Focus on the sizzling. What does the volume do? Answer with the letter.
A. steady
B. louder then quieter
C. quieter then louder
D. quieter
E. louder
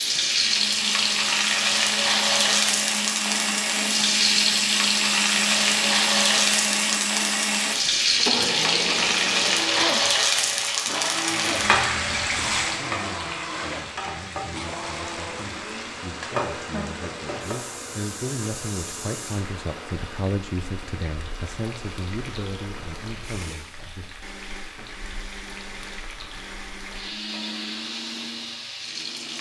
D.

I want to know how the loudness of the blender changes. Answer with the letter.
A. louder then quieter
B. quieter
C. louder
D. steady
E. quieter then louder
B.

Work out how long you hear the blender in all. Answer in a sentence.
You can hear the blender for 29 seconds altogether.